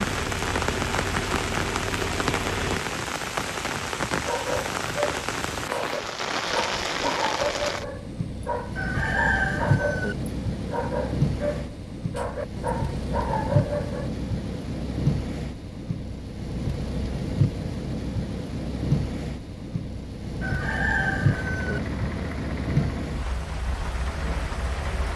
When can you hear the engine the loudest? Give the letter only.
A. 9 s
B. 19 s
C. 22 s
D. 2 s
D.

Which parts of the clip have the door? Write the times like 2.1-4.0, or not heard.
not heard.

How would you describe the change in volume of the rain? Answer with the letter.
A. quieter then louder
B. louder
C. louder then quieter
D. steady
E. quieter
D.